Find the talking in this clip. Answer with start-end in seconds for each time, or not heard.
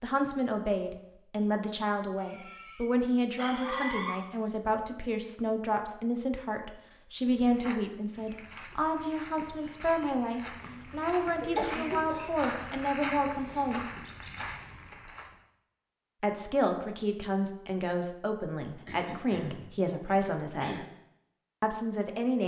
0.0-13.8, 16.2-20.9, 21.6-22.4.